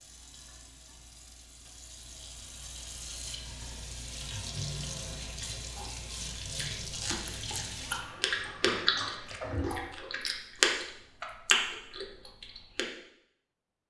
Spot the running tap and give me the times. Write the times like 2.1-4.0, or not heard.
0.0-9.8.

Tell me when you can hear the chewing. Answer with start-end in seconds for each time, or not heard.
6.5-12.8.